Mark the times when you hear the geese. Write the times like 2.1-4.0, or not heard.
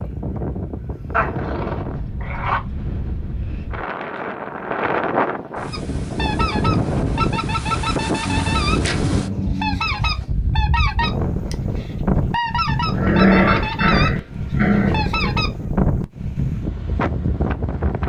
5.7-8.8, 9.6-14.1, 14.9-15.5.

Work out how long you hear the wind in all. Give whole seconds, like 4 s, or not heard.
18 s.